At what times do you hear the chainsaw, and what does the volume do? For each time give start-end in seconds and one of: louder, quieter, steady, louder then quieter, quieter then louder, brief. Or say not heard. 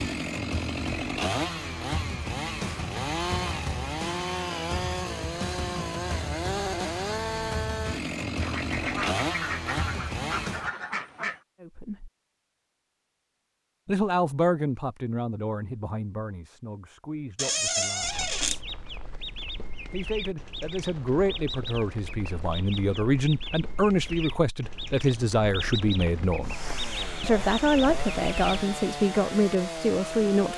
0.0-10.7 steady
26.4-30.5 steady.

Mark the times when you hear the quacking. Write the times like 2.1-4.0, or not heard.
8.3-11.4, 18.0-28.6.